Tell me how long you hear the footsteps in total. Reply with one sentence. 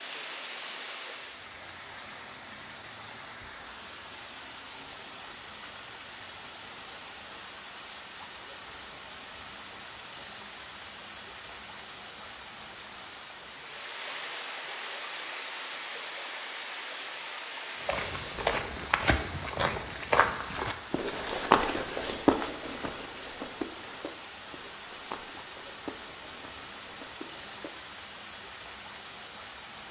You can hear the footsteps for 10 seconds altogether.